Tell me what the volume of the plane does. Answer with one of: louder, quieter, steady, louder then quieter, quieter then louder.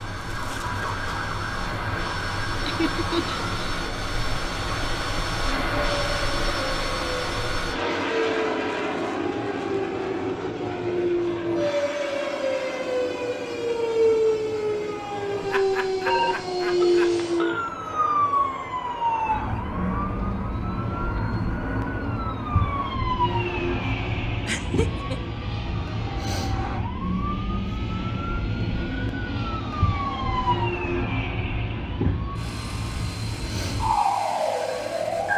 quieter.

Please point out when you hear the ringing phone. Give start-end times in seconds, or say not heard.
16.1-17.7.